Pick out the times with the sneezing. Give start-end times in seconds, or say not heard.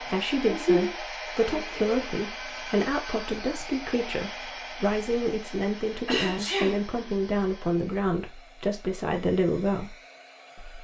0.5-2.1, 5.9-6.8.